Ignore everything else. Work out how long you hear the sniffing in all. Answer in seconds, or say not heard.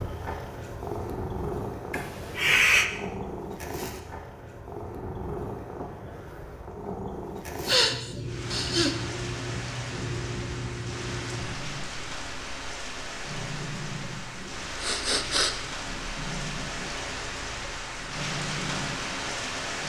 3 s.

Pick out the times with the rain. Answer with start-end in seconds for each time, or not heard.
8.2-19.8.